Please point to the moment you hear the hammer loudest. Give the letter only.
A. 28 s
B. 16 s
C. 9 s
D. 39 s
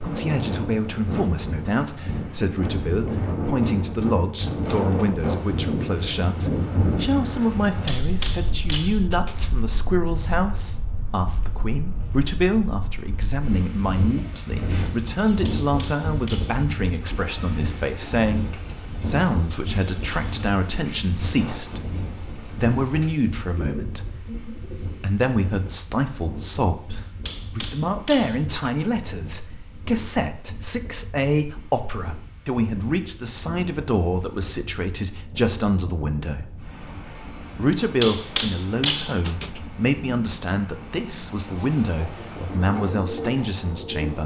D.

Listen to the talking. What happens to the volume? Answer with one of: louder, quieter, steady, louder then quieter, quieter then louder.
steady.